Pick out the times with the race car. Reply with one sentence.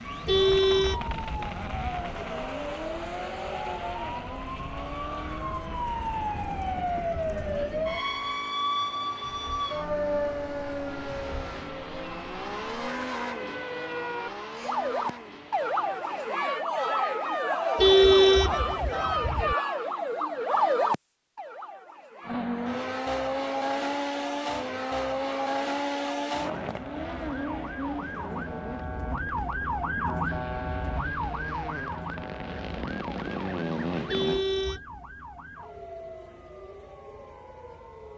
The race car can be heard from 0.0 to 16.4 s and from 22.2 to 34.5 s.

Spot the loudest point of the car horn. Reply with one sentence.
The volume of the car horn peaks at 18 seconds.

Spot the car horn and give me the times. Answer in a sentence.
You can hear the car horn from 0.2 to 2.0 s, from 17.8 to 19.6 s and from 34.0 to 34.8 s.